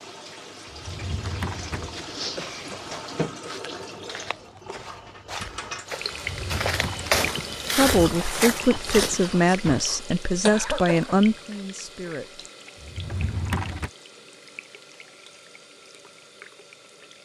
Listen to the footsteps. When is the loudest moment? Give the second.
7 s.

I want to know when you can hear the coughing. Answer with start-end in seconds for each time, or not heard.
2.4-3.1, 10.4-11.2.